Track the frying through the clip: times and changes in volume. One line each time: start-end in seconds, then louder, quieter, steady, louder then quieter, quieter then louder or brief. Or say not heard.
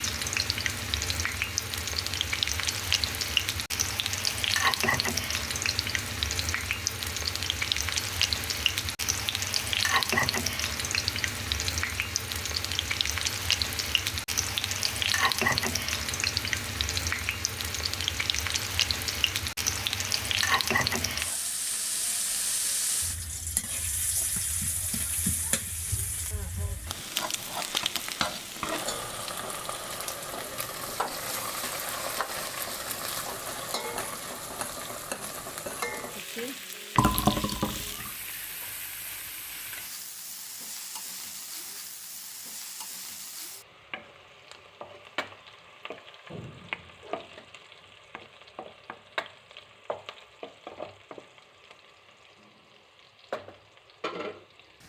0.0-54.8 quieter.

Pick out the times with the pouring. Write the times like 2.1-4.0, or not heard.
37.0-38.1.